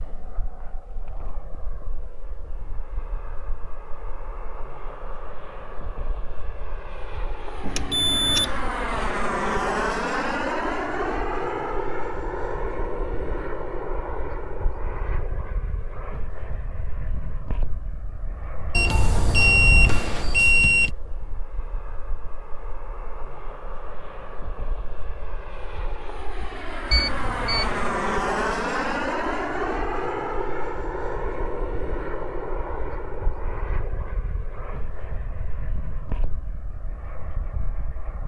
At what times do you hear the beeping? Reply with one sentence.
The beeping can be heard from 7.6 to 8.6 s, from 18.7 to 20.9 s and from 26.9 to 27.9 s.